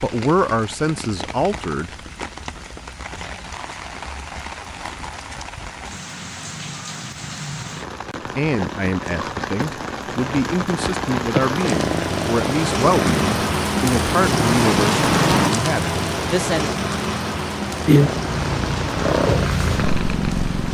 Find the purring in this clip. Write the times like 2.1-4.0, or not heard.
11.6-13.4, 17.7-20.6.